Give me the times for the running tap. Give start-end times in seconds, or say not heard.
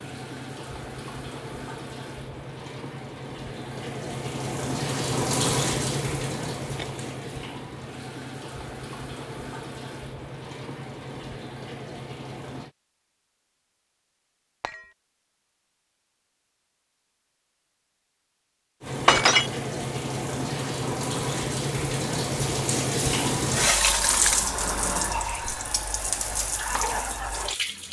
0.0-12.7, 18.8-27.8.